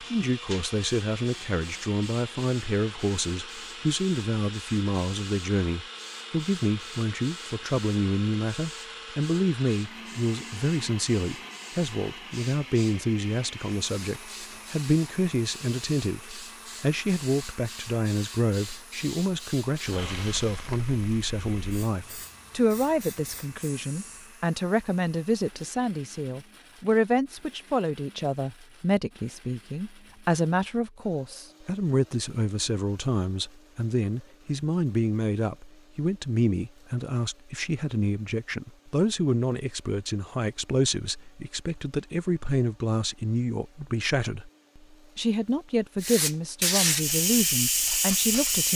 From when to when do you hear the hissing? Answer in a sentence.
The hissing can be heard from 0.0 to 24.3 s and from 46.0 to 48.6 s.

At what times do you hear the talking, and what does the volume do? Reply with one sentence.
You can hear the talking from 0.0 to 48.6 s, at a steady volume.